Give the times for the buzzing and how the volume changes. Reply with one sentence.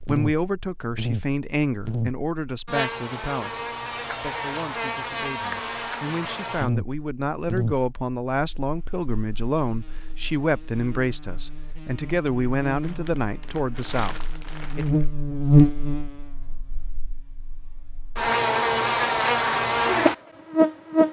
You can hear the buzzing from 0.0 to 21.0 s, getting quieter then louder.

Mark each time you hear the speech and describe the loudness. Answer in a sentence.
You can hear the speech from 0.1 to 14.8 s, getting quieter then louder.